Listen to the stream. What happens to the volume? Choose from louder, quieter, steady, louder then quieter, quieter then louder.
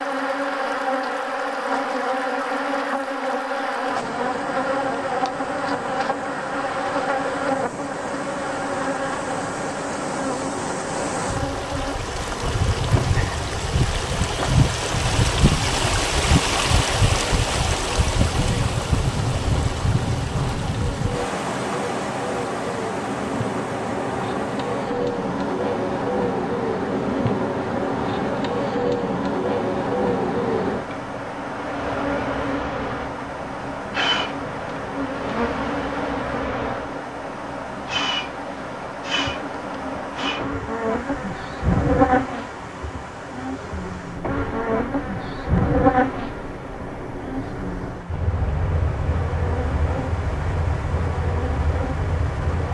louder then quieter.